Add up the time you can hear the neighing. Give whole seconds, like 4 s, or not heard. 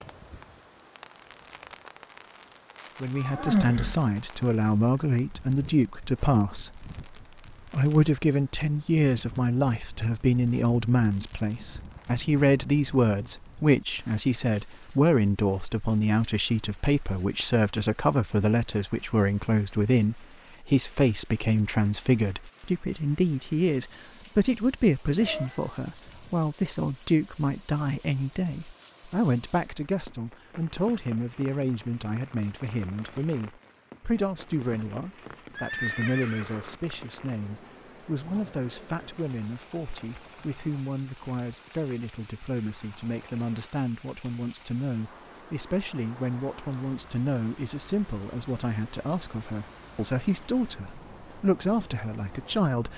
3 s.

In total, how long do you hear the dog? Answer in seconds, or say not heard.
not heard.